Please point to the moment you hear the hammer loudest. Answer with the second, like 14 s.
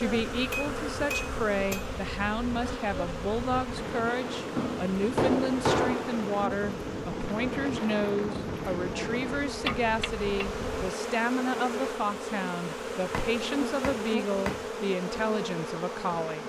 6 s.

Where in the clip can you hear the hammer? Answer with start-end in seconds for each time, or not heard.
0.3-1.9, 4.5-6.2, 9.7-10.4, 13.1-14.7.